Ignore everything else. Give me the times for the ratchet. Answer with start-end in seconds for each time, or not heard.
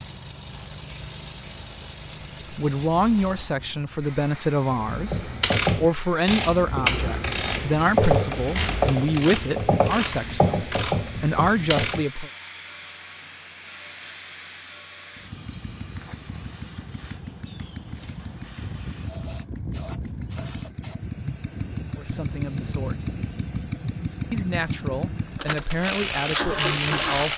4.9-12.1, 25.4-27.3.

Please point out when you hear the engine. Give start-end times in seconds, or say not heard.
0.0-9.1, 15.2-27.3.